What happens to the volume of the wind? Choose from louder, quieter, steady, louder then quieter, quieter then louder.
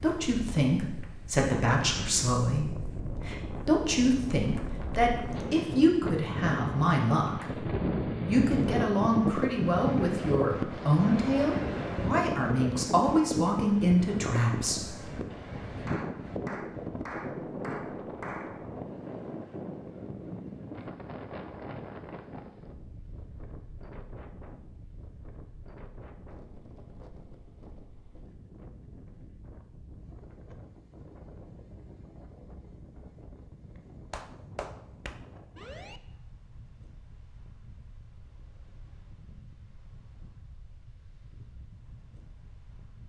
quieter.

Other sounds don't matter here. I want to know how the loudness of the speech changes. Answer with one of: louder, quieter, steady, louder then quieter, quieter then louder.
steady.